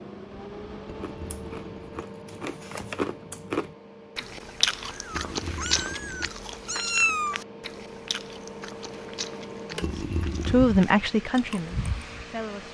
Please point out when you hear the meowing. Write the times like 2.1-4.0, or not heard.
4.8-7.4.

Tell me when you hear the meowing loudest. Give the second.
7 s.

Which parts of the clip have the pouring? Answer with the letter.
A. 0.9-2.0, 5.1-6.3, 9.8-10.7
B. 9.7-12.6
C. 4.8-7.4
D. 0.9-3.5
A.